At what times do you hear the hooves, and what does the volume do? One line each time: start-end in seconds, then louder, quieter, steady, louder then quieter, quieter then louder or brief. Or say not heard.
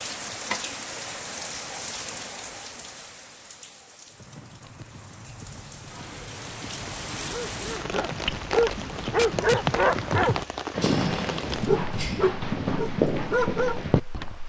4.1-14.3 louder.